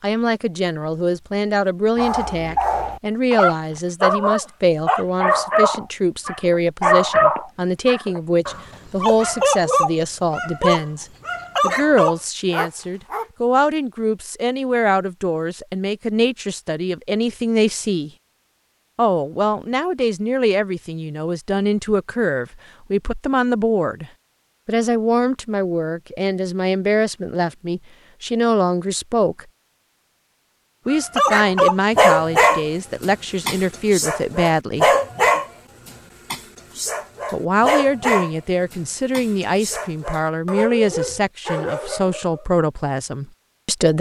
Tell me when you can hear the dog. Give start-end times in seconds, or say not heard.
1.9-13.2, 30.9-42.5.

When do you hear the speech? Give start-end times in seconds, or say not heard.
0.0-18.1, 18.9-29.4, 30.9-35.0, 37.3-43.9.